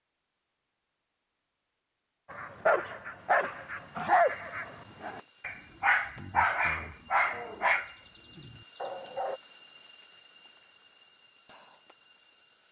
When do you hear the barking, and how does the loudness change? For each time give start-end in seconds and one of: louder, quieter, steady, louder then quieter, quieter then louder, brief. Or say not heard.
2.3-9.4 quieter.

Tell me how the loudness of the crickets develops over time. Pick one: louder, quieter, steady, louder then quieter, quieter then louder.
louder then quieter.